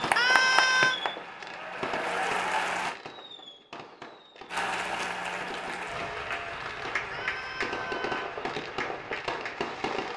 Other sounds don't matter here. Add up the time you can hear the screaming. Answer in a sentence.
The screaming can be heard for 2 seconds in total.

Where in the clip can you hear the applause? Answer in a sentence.
The applause can be heard from 0.0 to 3.0 s and from 4.5 to 10.1 s.